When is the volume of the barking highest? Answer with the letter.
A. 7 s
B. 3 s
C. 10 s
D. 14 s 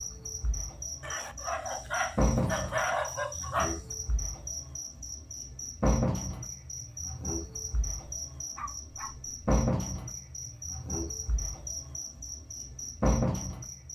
B.